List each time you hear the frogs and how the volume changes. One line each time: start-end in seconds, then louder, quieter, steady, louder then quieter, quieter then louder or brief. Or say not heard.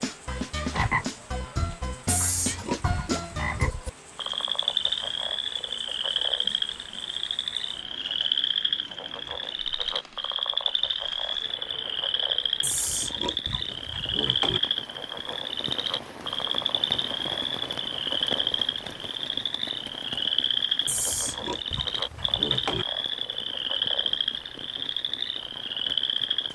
0.0-26.5 steady.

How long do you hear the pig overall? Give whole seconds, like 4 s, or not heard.
6 s.